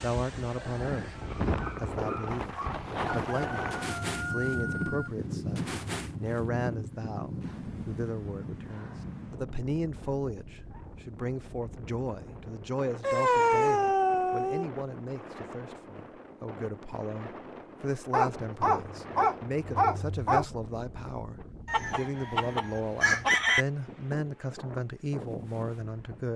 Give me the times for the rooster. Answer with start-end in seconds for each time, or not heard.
3.1-5.1, 21.6-23.6.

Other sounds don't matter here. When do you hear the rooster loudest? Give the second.
23 s.